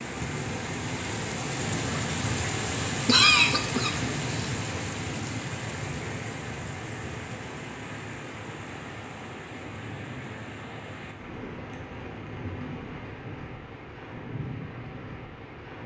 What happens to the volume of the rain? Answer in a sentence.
The volume of the rain goes down.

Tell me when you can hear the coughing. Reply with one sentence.
The coughing can be heard from 3.0 to 4.5 s.